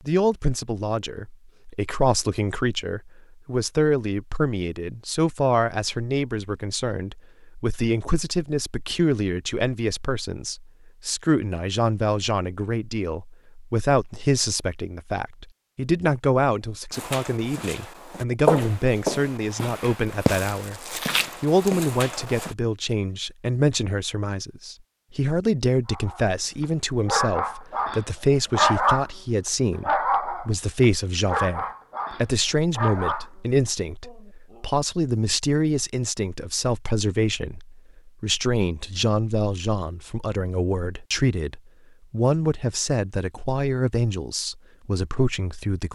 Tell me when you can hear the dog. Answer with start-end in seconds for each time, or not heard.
25.9-29.1, 29.8-33.3, 34.0-34.6.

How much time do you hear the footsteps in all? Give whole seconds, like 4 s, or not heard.
6 s.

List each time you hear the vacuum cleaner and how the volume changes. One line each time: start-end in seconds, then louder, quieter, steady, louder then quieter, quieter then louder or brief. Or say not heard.
not heard.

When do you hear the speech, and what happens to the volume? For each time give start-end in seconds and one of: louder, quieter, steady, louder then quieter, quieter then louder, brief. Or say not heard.
0.1-45.9 steady.